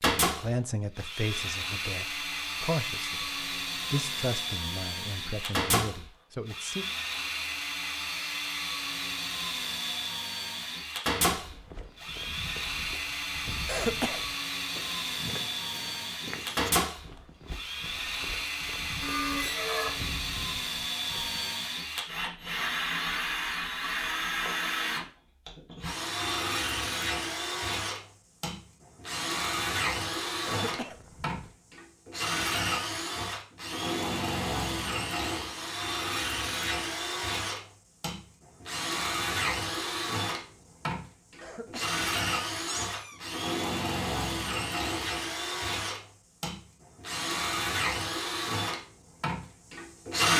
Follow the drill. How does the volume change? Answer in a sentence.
The volume of the drill stays about the same.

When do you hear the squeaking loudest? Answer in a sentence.
The volume of the squeaking peaks at 19 seconds.